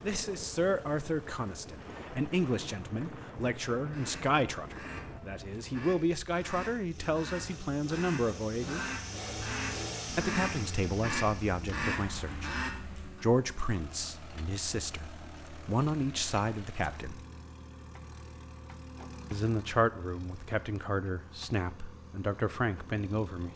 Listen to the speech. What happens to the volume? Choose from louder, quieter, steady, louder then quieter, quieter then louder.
steady.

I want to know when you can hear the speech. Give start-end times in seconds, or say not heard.
0.0-8.8, 10.1-17.2, 19.3-23.5.